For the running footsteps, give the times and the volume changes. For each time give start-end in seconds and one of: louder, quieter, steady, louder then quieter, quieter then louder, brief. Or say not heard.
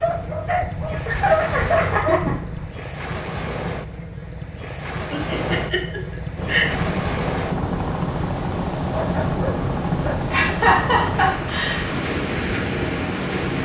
not heard.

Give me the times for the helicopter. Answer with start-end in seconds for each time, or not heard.
6.3-13.6.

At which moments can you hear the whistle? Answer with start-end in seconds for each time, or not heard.
not heard.